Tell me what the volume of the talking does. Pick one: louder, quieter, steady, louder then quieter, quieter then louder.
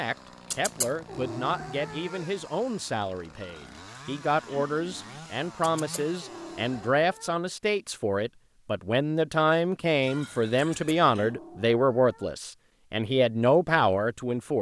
louder.